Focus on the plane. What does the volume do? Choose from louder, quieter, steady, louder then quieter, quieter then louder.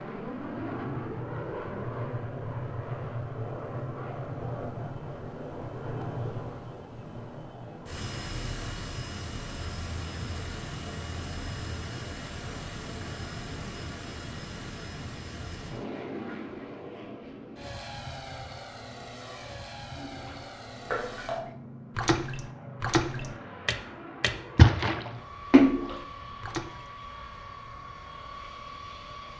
quieter.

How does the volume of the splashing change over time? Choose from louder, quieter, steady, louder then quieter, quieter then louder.
louder.